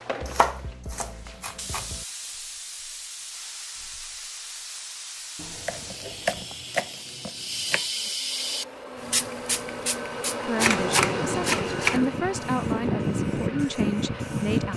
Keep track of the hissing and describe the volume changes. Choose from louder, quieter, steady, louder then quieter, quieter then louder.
louder.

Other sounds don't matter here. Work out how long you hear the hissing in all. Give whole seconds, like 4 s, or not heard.
15 s.